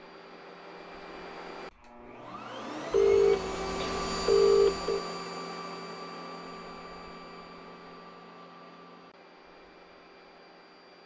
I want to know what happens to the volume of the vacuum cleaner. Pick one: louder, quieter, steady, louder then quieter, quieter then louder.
louder then quieter.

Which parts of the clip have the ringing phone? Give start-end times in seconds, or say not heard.
2.9-5.0.